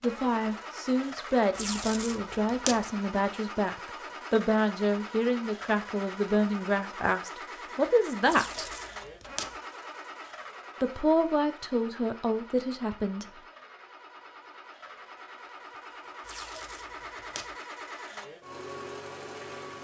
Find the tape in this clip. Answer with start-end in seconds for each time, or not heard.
1.6-2.9, 8.2-9.6, 16.2-17.6.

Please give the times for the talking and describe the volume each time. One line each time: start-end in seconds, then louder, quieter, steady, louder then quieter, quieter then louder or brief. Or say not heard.
0.0-8.7 steady
10.8-13.4 brief.